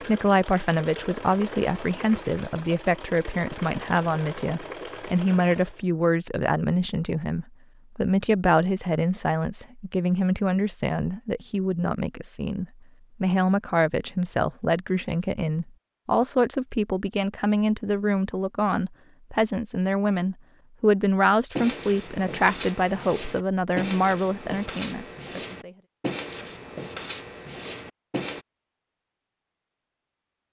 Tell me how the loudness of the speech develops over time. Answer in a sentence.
The volume of the speech stays about the same.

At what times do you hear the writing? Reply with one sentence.
The writing can be heard from 21.6 to 28.4 s.